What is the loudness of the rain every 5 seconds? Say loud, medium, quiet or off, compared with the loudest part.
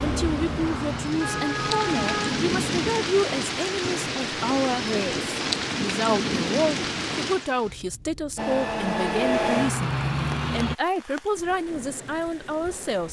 loud, loud, quiet.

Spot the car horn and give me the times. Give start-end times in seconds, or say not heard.
0.9-2.9.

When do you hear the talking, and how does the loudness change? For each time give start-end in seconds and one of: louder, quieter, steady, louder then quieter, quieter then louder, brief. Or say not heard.
0.0-13.0 steady.